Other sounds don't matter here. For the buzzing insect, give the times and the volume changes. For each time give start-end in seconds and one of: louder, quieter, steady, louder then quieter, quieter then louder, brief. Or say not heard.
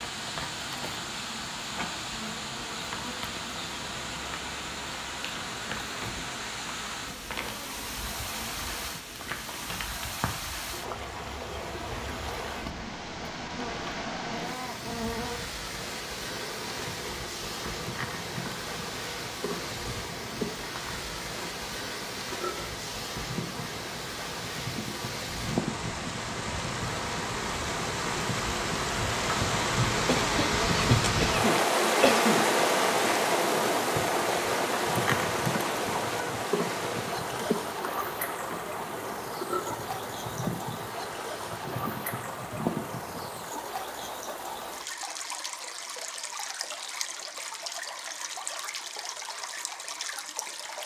0.0-43.5 louder.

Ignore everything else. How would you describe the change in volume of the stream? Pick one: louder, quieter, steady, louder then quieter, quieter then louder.
louder then quieter.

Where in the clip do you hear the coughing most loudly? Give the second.
32 s.